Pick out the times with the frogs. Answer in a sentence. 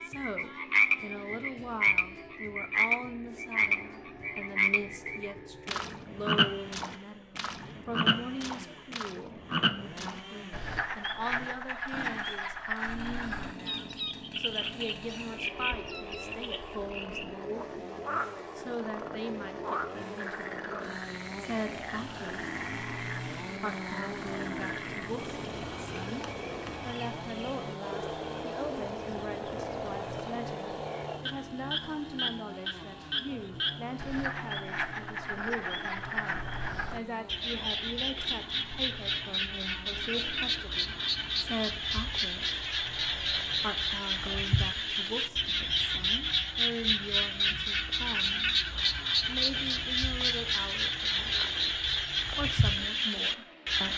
The frogs can be heard from 0.0 to 53.9 s.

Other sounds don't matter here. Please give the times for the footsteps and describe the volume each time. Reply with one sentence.
The footsteps can't be heard in this clip.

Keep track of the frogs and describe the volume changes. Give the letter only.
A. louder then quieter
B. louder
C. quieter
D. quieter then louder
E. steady
D.